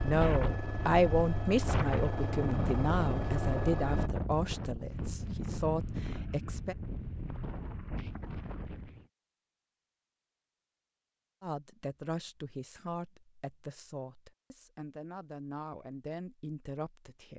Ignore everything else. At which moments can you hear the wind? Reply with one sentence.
You can hear the wind from 0.0 to 9.1 s.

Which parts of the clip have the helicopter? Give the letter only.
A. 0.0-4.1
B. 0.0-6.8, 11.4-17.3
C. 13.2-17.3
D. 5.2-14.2
A.